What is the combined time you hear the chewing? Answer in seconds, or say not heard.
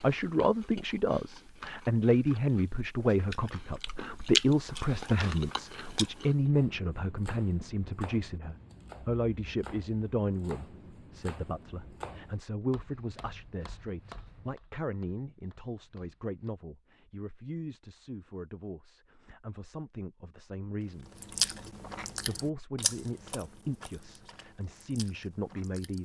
11 s.